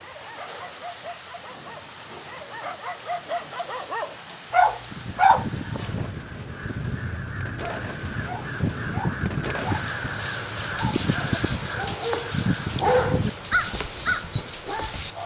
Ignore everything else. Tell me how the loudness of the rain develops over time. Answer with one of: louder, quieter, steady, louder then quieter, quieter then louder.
louder.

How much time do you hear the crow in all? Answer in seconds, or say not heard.
10 s.